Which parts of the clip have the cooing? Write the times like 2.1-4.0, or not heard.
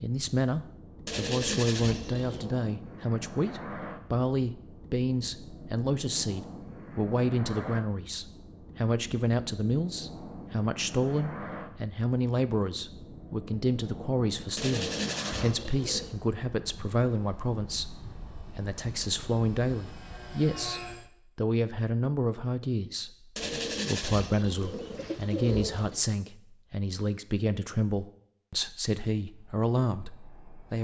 1.1-2.5, 14.6-16.1, 23.4-26.1.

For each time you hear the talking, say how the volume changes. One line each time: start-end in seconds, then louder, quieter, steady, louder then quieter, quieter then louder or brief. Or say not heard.
0.0-23.1 steady
23.9-30.8 steady.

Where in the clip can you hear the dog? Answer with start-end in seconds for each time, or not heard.
not heard.